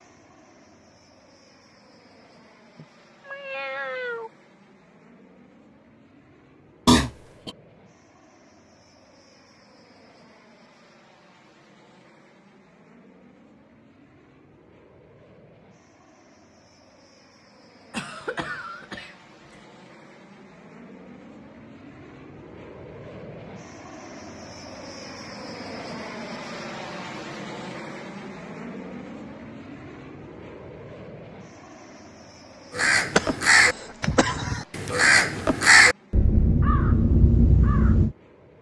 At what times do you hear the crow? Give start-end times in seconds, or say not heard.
32.7-38.1.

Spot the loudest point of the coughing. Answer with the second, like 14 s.
7 s.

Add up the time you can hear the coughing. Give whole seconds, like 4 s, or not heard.
3 s.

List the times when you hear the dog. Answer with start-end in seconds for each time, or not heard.
not heard.